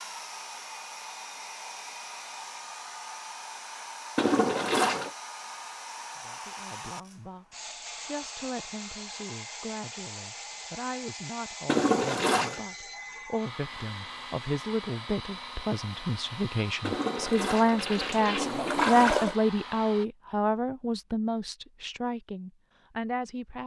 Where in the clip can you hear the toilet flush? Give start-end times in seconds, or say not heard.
4.2-5.1, 11.7-12.6, 16.8-19.4.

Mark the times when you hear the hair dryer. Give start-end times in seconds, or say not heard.
0.0-20.1.